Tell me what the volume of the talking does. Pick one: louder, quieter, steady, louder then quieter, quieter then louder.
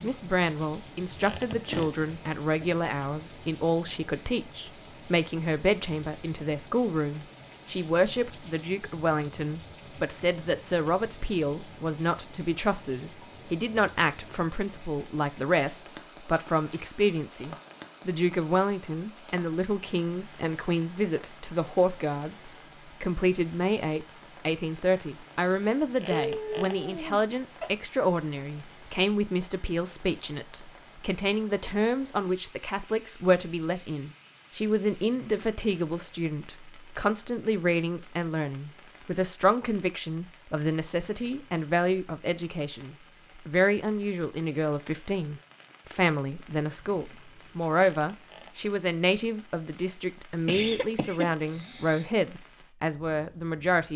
steady.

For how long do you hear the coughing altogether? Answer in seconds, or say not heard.
5 s.